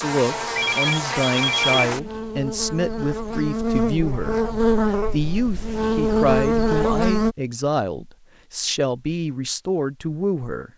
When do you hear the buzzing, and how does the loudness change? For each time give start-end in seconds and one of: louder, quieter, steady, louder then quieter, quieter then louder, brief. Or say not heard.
0.0-7.3 louder.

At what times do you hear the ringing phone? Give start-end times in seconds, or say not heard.
0.6-1.9.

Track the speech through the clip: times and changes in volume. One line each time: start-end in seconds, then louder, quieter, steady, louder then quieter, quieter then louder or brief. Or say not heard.
0.0-10.7 steady.